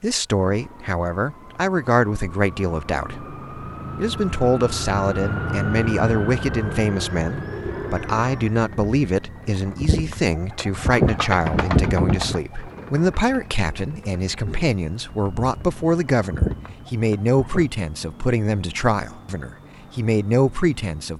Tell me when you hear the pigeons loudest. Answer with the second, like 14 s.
12 s.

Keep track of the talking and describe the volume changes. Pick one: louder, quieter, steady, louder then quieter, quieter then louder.
steady.